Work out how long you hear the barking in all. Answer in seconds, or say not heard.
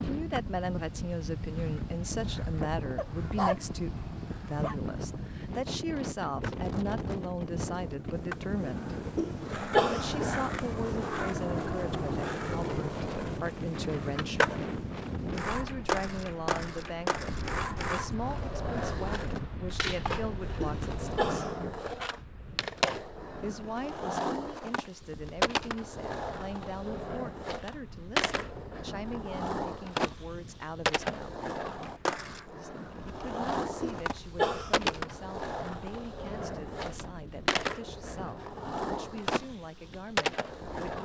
2 s.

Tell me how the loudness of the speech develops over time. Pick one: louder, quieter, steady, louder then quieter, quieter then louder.
quieter.